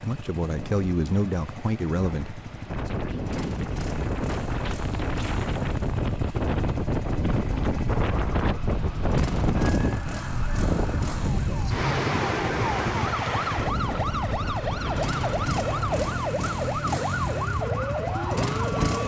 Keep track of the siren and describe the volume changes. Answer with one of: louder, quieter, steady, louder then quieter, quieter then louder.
louder.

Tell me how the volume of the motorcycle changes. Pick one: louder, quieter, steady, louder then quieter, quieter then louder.
louder.